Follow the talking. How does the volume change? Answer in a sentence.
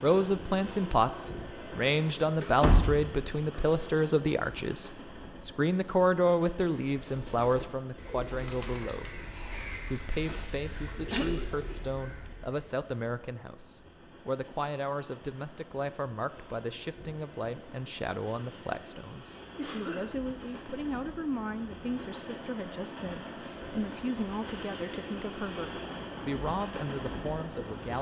The volume of the talking goes down.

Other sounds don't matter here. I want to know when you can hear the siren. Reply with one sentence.
You can't hear the siren here.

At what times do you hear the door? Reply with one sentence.
You can hear the door from 2.6 to 3.6 s.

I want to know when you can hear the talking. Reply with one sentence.
The talking can be heard from 0.0 to 27.9 s.